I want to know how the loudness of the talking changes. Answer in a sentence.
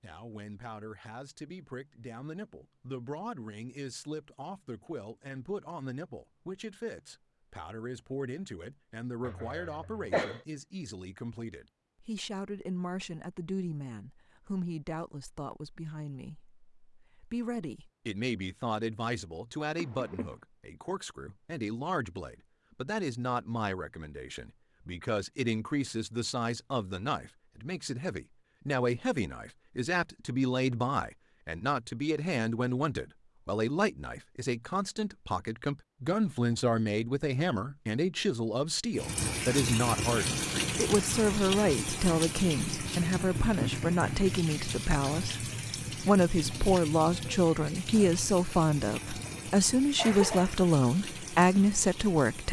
The loudness of the talking goes up.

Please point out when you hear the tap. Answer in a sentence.
You can hear the tap from 39.0 to 52.4 s.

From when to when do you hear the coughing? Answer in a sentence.
The coughing can be heard from 9.2 to 10.4 s, from 19.8 to 20.4 s and from 50.0 to 50.6 s.